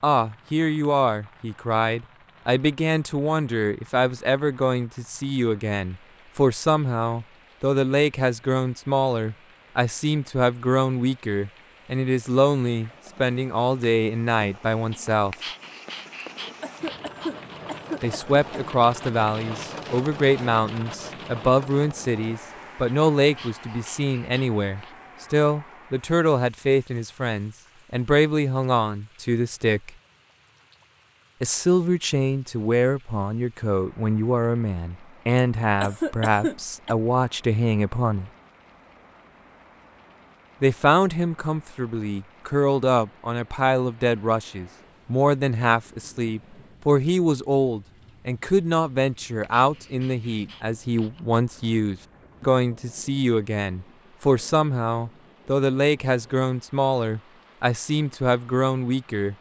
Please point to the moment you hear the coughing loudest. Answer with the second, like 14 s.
36 s.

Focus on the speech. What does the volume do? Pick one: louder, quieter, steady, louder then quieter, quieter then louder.
steady.